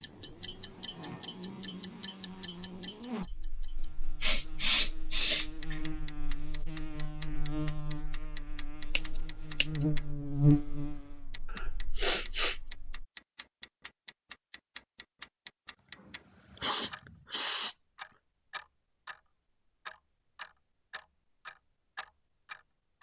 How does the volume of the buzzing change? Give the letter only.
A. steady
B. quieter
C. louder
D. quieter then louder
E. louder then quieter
C.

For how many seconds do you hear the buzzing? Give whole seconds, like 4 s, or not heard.
13 s.